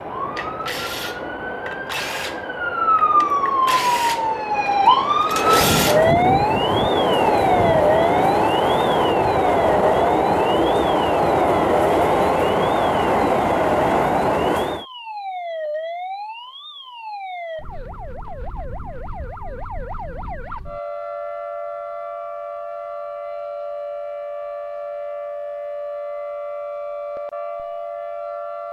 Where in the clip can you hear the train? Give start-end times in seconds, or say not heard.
0.0-14.8.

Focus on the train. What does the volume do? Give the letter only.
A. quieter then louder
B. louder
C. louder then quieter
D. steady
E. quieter
B.